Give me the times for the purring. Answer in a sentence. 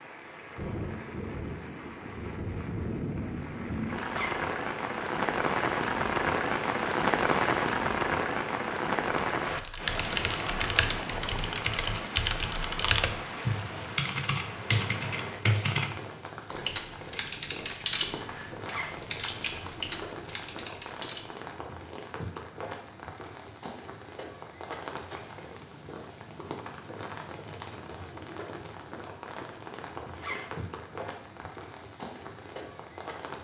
The purring can't be heard in this clip.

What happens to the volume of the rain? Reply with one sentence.
The volume of the rain goes down.